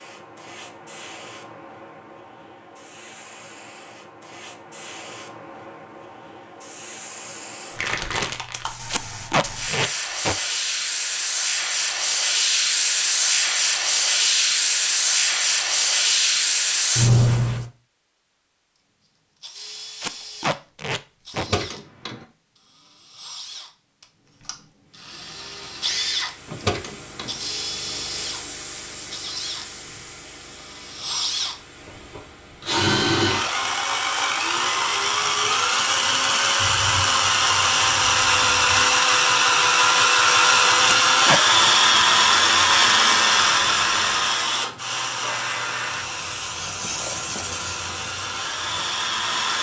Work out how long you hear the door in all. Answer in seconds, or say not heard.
2 s.